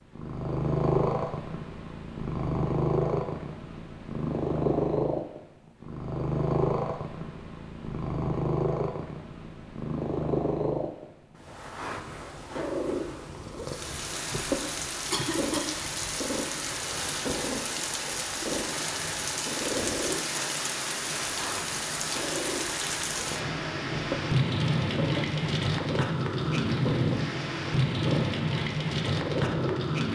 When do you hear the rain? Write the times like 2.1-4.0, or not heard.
13.6-30.0.